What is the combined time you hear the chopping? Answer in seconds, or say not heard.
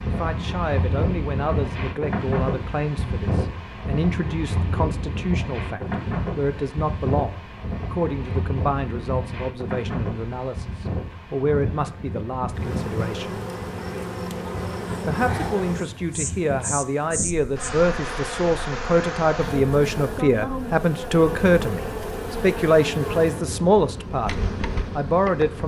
not heard.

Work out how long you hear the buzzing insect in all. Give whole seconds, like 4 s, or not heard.
13 s.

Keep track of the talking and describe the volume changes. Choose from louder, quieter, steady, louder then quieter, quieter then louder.
louder.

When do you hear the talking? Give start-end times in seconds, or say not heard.
0.0-13.3, 15.1-25.6.